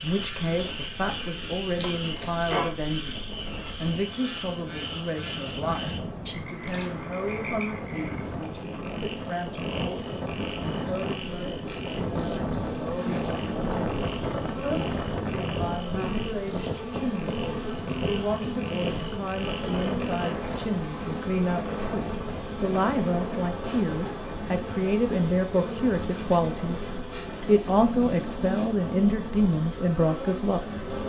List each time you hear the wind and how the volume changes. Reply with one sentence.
The wind can be heard from 0.2 to 31.0 s, getting louder then quieter.